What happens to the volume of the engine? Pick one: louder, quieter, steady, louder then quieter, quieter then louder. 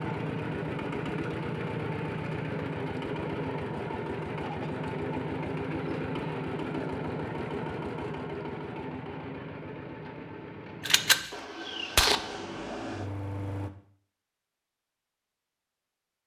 quieter.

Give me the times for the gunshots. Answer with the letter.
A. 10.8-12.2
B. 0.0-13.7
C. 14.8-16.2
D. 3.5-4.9
A.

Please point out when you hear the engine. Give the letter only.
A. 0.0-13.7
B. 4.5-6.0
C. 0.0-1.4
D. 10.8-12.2
A.